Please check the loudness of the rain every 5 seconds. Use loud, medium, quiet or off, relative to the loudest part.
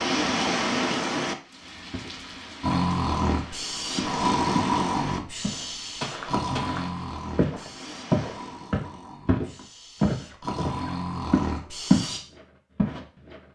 loud, quiet, off.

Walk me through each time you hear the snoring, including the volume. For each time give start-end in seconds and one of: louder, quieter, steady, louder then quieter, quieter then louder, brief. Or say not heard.
2.6-12.2 quieter then louder.